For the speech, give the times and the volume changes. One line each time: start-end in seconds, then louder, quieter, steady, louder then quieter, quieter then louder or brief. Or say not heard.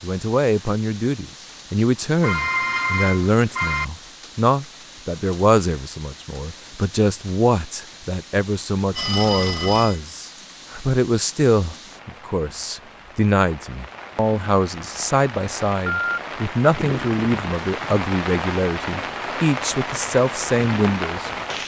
0.0-21.3 steady.